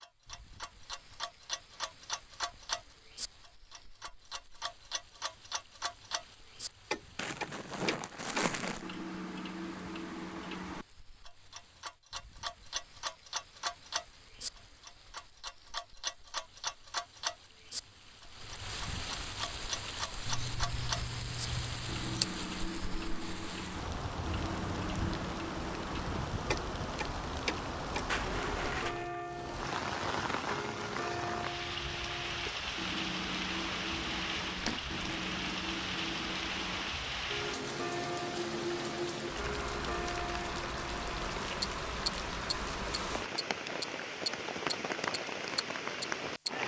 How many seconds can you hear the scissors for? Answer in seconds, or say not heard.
2 s.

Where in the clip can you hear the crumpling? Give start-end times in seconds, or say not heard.
7.2-8.8, 28.1-29.4, 34.5-35.0.